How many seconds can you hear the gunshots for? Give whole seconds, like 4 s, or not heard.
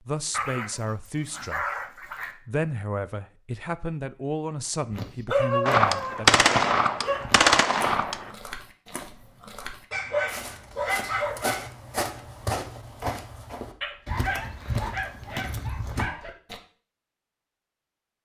3 s.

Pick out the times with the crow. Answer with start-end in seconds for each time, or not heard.
not heard.